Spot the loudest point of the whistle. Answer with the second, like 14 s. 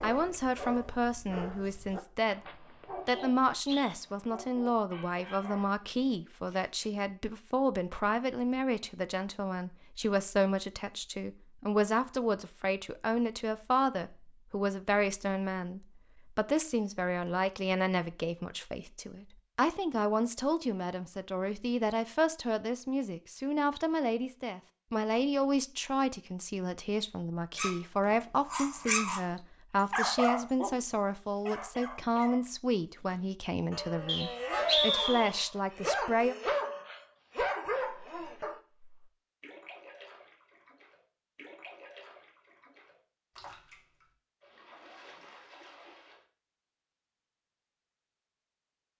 35 s.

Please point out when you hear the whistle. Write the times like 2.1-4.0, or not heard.
3.0-4.0, 34.0-35.3.